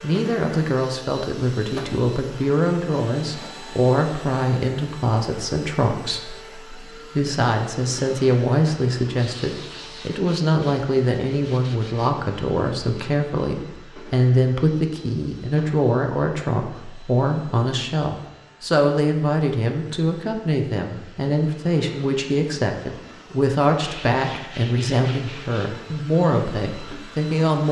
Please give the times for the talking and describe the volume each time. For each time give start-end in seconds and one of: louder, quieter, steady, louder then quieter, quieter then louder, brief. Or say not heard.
0.0-27.6 steady.